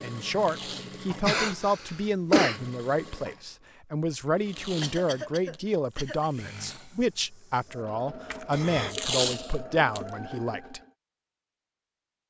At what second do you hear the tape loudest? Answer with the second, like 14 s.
9 s.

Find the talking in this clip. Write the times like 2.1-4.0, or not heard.
0.0-10.8.